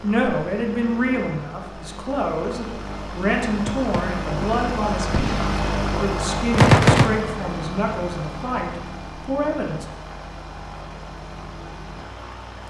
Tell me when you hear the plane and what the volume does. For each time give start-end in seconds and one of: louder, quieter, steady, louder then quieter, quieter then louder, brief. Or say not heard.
0.0-12.6 louder then quieter.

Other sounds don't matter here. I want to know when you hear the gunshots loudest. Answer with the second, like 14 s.
7 s.